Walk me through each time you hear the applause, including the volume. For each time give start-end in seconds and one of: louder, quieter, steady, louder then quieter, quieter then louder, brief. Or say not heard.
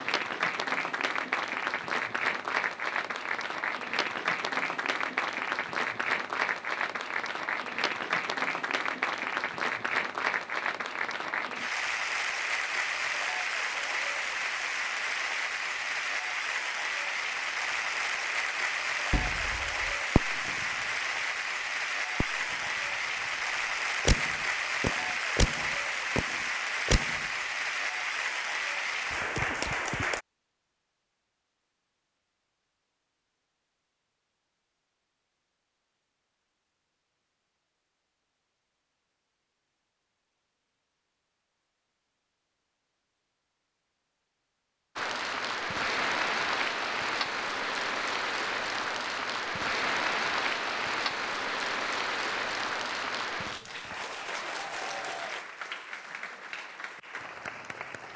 0.0-30.2 steady
45.0-58.1 quieter.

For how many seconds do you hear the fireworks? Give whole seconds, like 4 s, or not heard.
5 s.